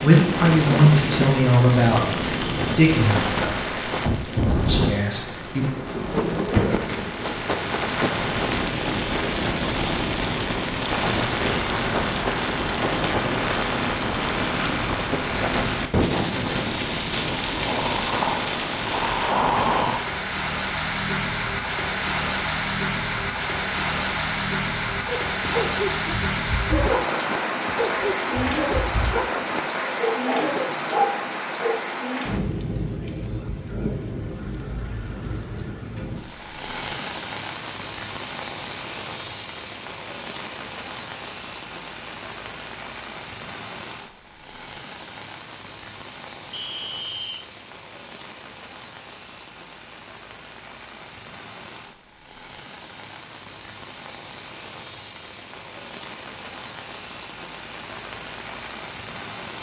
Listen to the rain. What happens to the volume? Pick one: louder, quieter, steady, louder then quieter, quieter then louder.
quieter.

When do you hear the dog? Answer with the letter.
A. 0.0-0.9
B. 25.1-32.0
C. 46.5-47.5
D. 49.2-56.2
B.